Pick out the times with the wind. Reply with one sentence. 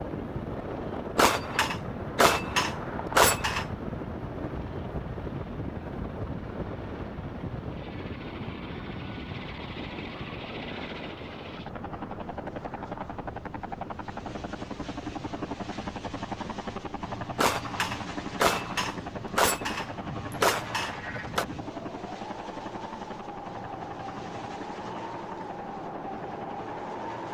The wind can be heard from 0.0 to 27.2 s.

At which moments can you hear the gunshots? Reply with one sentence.
The gunshots can be heard from 1.1 to 3.6 s and from 17.4 to 21.4 s.